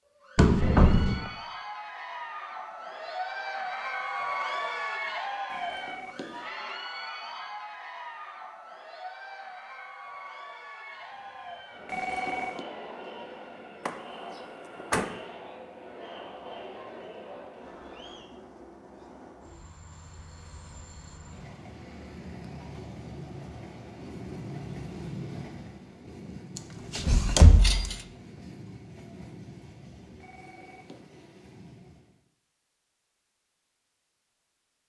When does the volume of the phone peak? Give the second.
12 s.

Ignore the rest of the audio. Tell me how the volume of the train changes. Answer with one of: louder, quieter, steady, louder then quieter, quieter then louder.
louder then quieter.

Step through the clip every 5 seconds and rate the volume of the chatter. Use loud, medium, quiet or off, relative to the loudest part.
loud, loud, medium, medium, off, off, off.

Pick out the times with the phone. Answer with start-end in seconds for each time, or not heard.
5.5-6.5, 11.8-12.7, 30.2-31.1.